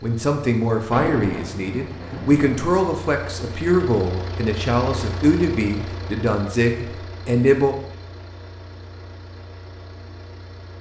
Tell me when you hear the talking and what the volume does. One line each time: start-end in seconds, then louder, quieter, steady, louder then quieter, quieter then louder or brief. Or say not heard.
0.0-7.8 steady.